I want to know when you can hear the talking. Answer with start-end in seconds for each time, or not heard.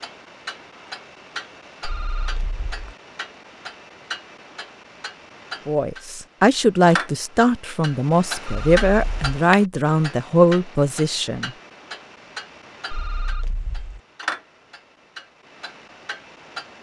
5.7-11.5.